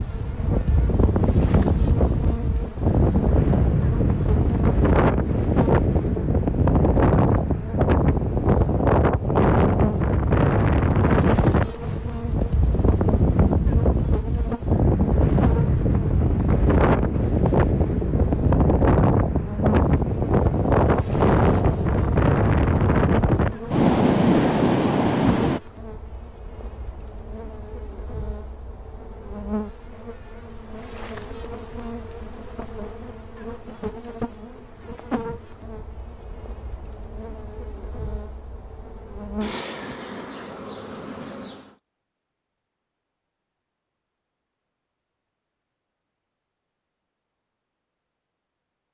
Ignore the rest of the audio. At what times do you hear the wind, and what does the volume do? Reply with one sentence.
The wind can be heard from 0.0 to 25.6 s, at a steady volume.